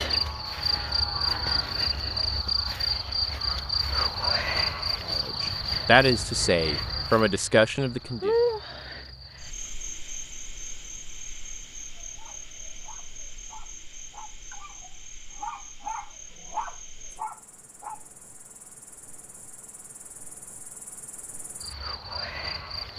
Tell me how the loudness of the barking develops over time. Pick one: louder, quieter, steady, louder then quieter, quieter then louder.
louder.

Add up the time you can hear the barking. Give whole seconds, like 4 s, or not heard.
6 s.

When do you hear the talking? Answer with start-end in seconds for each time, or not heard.
5.0-8.3.